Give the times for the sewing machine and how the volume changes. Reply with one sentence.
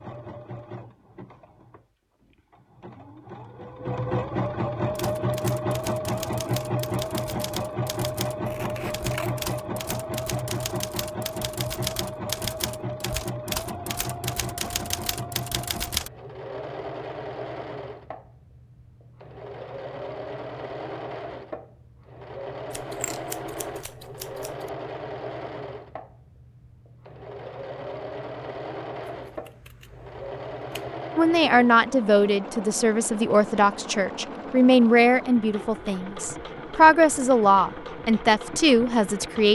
You can hear the sewing machine from 0.0 to 39.4 s, getting quieter.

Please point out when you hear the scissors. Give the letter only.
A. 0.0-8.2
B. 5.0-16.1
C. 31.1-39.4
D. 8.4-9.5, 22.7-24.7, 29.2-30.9
D.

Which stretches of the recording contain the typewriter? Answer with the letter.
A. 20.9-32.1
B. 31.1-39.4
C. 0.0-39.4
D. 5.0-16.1
D.